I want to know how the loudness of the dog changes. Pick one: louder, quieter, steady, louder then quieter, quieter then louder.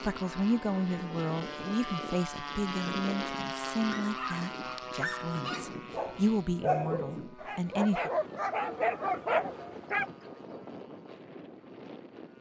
louder.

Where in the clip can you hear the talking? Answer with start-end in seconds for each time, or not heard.
0.0-8.1.